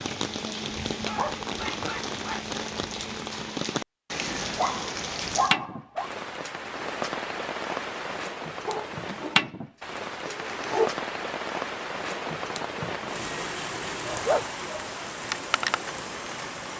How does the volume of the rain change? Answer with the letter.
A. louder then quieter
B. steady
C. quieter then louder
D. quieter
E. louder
B.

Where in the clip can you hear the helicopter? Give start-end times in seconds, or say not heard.
not heard.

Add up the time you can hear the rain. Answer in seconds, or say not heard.
17 s.